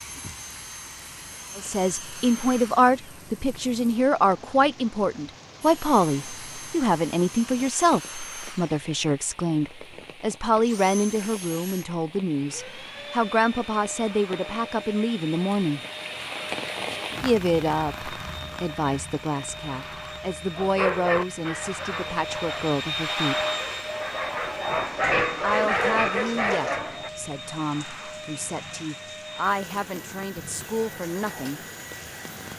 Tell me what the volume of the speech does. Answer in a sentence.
The loudness of the speech goes down.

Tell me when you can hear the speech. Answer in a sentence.
The speech can be heard from 1.6 to 15.8 s, from 17.2 to 23.4 s and from 25.4 to 31.6 s.